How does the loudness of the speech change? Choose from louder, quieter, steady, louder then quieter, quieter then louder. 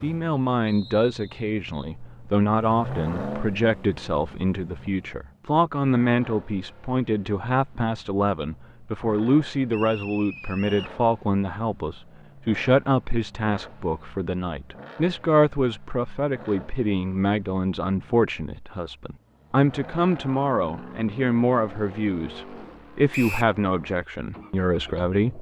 steady.